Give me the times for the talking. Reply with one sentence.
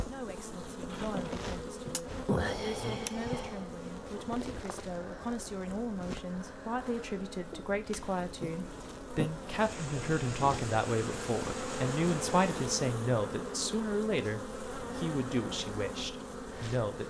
The talking can be heard from 0.1 to 17.0 s.